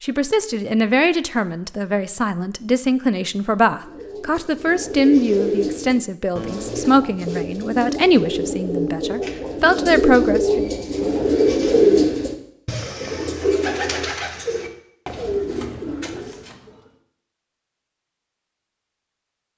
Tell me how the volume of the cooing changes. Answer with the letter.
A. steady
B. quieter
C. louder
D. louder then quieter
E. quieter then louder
D.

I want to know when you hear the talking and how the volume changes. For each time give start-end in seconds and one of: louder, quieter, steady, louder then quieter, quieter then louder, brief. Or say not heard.
0.0-10.7 steady.